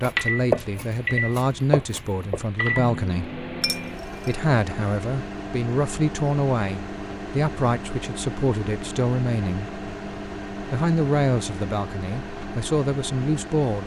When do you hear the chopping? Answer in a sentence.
You can hear the chopping from 0.0 to 2.5 s.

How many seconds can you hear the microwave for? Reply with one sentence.
You can hear the microwave for 14 seconds altogether.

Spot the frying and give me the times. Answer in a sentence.
The frying can't be heard in this clip.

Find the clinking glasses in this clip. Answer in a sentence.
The clinking glasses can be heard from 3.6 to 4.3 s.